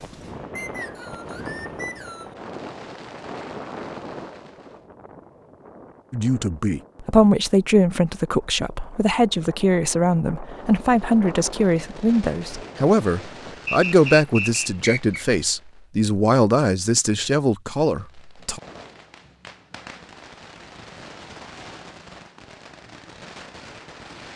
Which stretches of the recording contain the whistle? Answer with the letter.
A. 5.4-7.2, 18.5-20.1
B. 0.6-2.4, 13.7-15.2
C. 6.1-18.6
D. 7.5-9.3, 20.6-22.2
B.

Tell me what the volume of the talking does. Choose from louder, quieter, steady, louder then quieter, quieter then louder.
steady.